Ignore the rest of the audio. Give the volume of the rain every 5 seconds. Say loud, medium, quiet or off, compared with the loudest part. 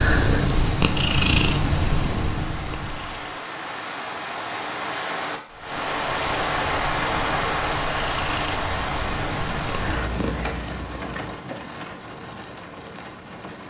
medium, loud, medium.